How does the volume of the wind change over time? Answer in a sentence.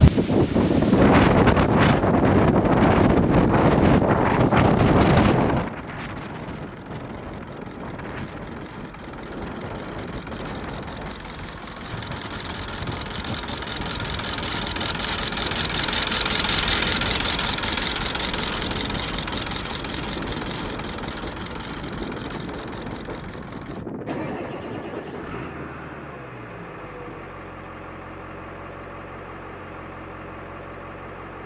The volume of the wind goes down.